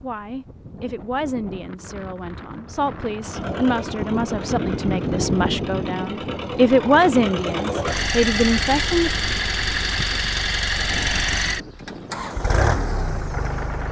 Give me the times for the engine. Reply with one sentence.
The engine can be heard from 3.2 to 13.8 s.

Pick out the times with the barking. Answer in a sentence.
The barking can't be heard in this clip.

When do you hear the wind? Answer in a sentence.
The wind can be heard from 0.0 to 13.8 s.